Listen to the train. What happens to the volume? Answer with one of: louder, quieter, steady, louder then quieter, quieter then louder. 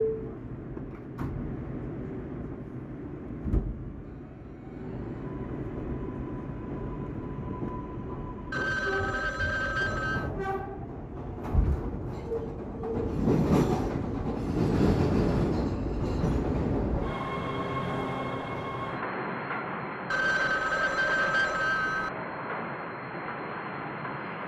louder then quieter.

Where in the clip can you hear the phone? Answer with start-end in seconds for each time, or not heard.
8.5-10.3, 20.1-22.1.